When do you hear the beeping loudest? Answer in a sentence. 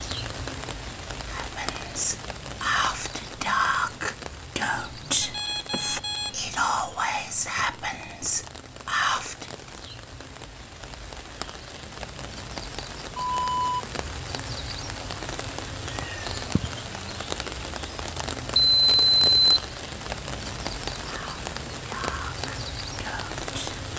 The volume of the beeping peaks at 19 seconds.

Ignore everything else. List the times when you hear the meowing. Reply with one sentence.
You can hear the meowing from 15.9 to 16.8 s.